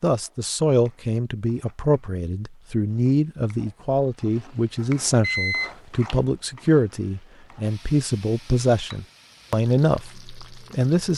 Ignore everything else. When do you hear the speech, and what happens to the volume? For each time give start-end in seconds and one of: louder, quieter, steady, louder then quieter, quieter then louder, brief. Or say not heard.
0.0-11.1 steady.